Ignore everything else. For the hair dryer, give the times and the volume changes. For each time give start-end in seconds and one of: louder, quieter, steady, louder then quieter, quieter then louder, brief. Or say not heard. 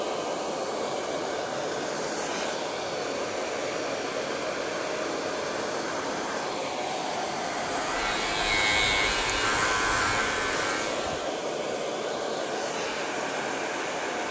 0.0-14.2 steady.